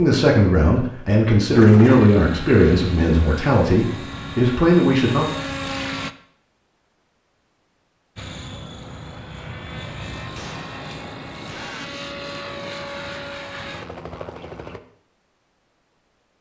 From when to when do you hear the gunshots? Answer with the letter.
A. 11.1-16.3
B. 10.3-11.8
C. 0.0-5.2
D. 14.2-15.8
B.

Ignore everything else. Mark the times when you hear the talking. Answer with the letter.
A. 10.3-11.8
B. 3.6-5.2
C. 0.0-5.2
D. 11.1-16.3
C.